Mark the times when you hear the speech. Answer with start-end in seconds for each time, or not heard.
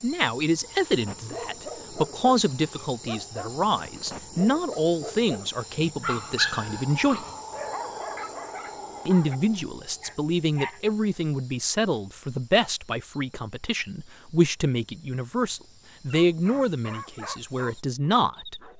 0.0-7.2, 9.1-18.7.